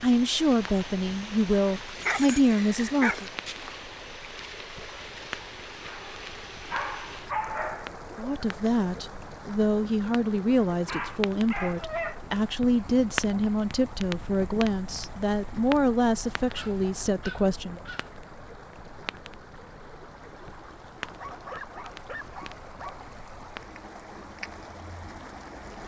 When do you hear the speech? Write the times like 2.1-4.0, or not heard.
0.0-3.2, 8.2-17.8.